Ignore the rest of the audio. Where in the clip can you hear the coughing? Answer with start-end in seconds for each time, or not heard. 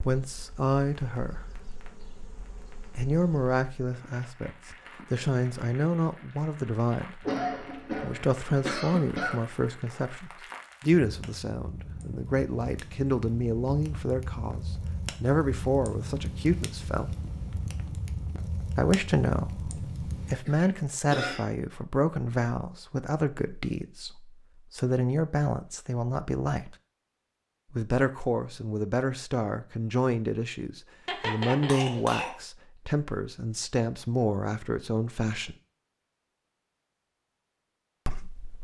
7.2-9.4, 20.4-21.4, 31.1-32.4.